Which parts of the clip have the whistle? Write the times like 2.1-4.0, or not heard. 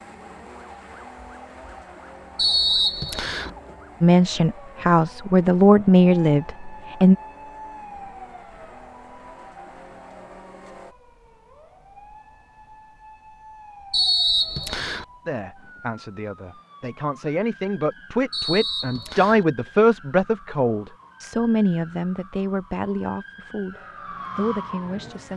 2.4-3.5, 13.9-15.1, 18.3-19.4.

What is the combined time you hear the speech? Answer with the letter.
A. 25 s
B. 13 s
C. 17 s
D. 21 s
B.